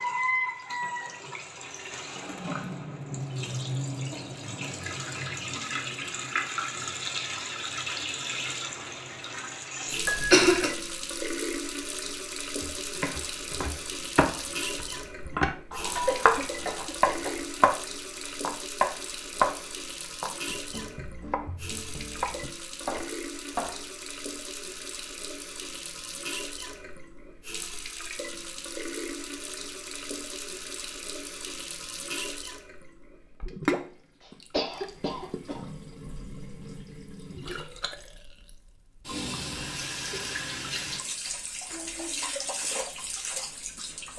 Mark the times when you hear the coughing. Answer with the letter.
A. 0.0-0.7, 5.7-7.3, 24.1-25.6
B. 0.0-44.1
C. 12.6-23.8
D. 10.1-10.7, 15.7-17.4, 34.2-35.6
D.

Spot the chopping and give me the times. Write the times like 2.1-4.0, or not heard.
12.6-23.8.